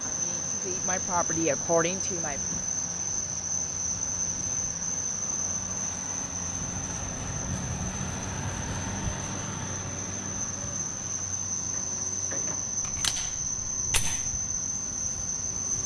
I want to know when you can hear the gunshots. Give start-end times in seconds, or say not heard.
12.8-14.3.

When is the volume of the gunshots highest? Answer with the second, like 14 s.
13 s.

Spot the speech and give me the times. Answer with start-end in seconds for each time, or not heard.
0.0-2.4.